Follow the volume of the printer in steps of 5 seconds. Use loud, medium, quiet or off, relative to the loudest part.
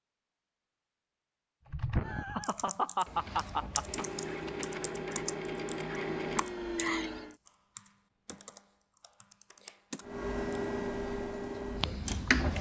medium, loud, loud.